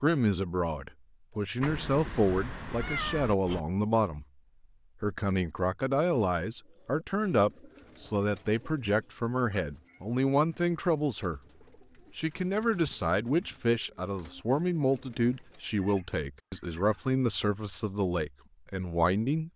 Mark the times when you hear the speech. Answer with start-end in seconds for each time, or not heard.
0.0-4.2, 5.0-11.4, 12.2-19.5.